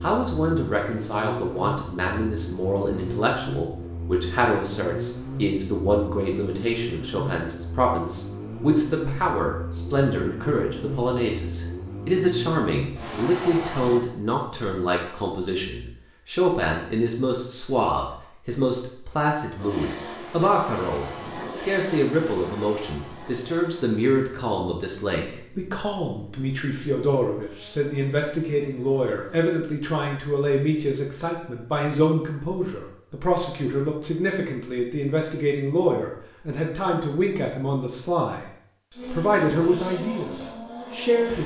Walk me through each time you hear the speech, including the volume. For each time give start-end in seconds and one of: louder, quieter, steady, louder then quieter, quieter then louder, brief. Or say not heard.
0.0-38.5 steady
39.1-41.4 brief.